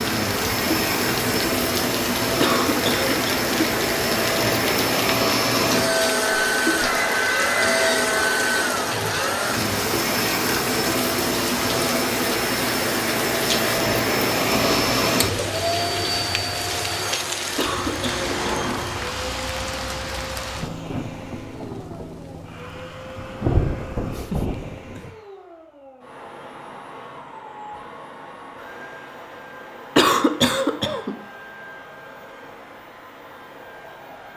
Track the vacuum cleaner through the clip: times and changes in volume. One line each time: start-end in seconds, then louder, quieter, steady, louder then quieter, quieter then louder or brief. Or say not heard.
0.0-34.3 quieter.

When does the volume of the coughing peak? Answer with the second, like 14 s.
30 s.